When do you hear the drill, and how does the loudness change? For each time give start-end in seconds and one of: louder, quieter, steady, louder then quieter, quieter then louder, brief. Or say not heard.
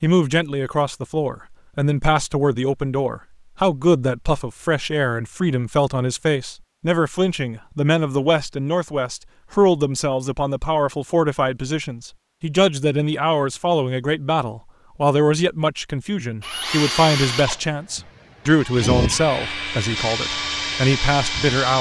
16.4-21.7 quieter then louder.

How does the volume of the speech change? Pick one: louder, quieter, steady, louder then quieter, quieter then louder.
steady.